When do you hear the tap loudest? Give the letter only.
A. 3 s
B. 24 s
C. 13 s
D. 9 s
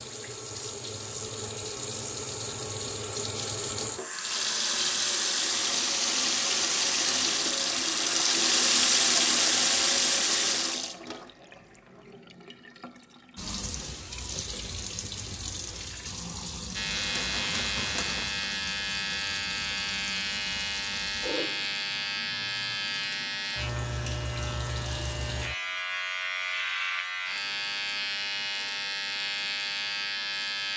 D.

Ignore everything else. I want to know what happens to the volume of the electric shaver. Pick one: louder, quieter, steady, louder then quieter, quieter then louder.
steady.